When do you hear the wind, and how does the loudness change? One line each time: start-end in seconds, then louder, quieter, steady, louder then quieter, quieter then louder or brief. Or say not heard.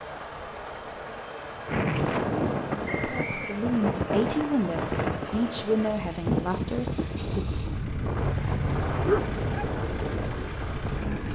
1.6-11.2 steady.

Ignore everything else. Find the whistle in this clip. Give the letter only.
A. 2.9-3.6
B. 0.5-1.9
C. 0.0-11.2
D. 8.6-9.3
A.